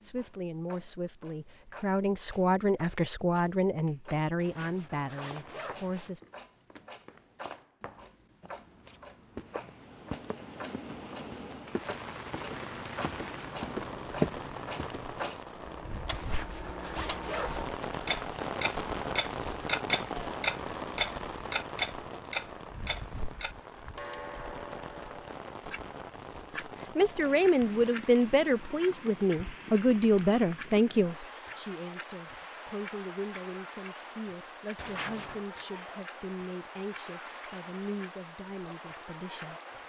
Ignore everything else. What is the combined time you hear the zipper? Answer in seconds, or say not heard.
4 s.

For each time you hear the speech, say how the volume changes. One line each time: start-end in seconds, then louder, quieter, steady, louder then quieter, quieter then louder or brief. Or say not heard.
0.0-6.2 louder then quieter
26.9-39.8 quieter.